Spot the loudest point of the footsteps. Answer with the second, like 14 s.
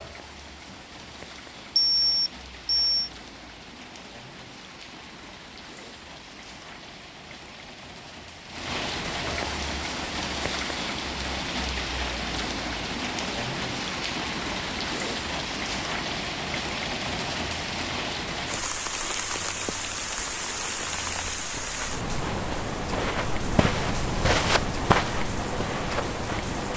25 s.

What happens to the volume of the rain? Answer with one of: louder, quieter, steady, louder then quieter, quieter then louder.
louder.